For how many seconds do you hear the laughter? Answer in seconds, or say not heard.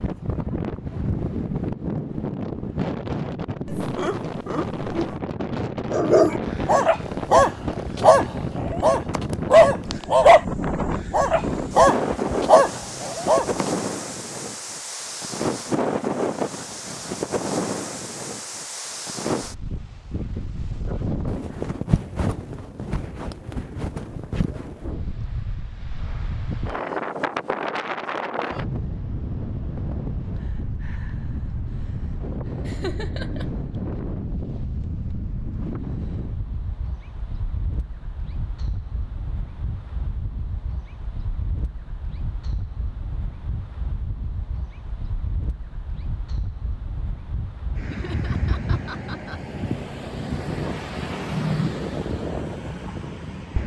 4 s.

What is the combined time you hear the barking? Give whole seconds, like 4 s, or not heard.
8 s.